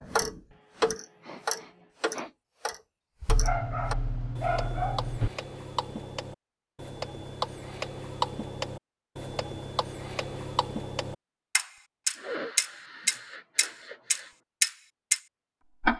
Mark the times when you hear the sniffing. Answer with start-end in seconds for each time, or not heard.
0.5-2.4, 12.2-14.3.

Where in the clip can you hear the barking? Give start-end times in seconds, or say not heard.
3.2-5.3.